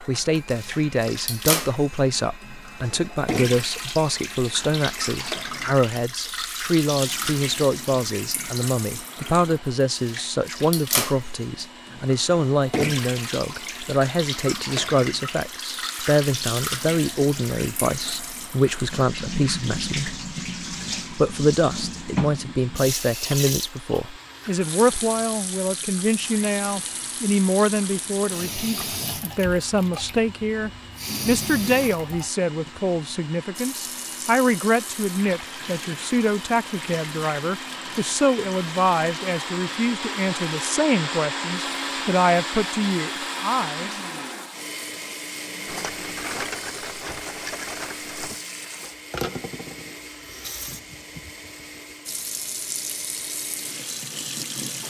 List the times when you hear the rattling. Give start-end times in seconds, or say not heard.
45.6-48.4.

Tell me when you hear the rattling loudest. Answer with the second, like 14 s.
46 s.